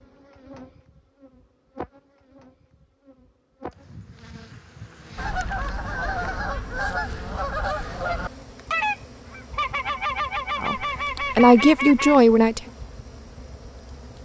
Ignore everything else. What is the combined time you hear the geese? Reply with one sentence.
The geese can be heard for 7 seconds in total.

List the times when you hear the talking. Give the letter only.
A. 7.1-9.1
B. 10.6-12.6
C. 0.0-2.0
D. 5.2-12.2
B.